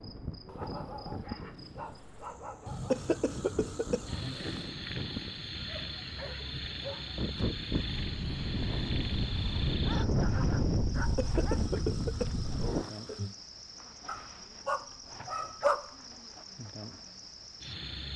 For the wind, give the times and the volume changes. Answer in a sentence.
You can hear the wind from 0.0 to 12.9 s, getting louder.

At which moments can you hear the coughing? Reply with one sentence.
The coughing can be heard from 2.6 to 4.7 s and from 10.9 to 13.3 s.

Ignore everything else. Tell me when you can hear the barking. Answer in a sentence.
You can hear the barking from 0.5 to 3.0 s, from 5.7 to 7.2 s, from 9.8 to 11.7 s and from 14.1 to 15.9 s.